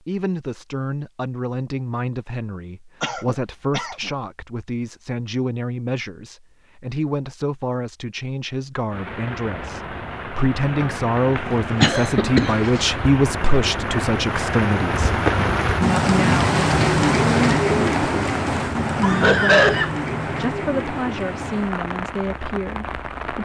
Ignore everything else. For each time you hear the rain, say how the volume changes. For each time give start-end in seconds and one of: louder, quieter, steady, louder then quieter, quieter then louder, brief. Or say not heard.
8.9-23.4 louder then quieter.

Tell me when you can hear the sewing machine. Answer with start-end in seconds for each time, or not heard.
not heard.